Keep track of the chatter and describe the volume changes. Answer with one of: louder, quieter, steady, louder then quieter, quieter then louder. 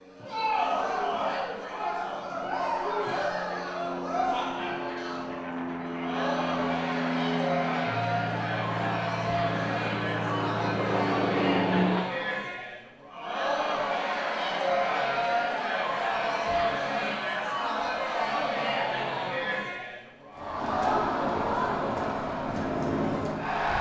steady.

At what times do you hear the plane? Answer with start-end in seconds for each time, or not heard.
0.0-12.1, 20.6-23.7.